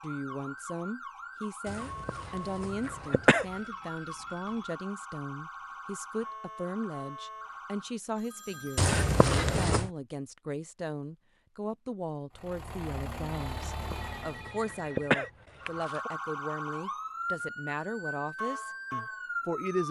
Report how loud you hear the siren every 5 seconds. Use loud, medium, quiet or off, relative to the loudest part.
medium, medium, off, loud.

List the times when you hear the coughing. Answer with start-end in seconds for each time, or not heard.
1.6-3.5, 8.8-9.9, 13.7-16.1.